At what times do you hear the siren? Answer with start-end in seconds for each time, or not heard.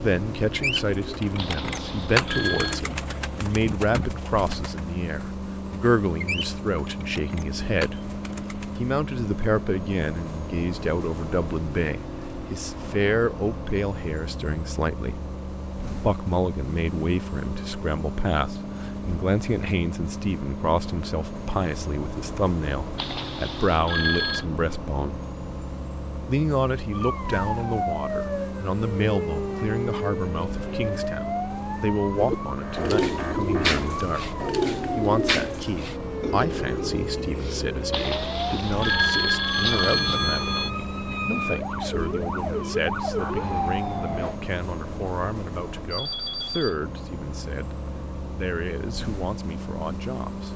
26.9-44.4.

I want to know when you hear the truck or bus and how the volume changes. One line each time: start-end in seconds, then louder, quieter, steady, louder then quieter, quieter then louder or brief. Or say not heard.
0.0-50.5 steady.